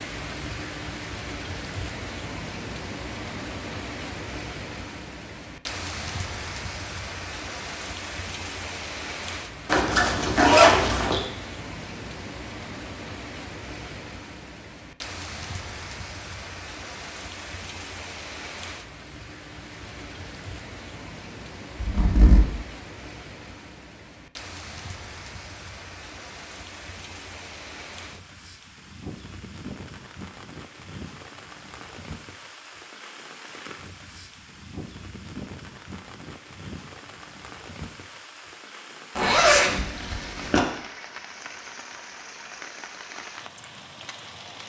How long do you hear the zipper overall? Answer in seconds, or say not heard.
4 s.